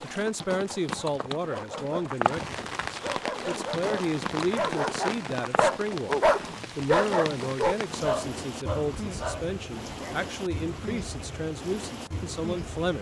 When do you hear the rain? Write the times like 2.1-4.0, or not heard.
0.1-12.9.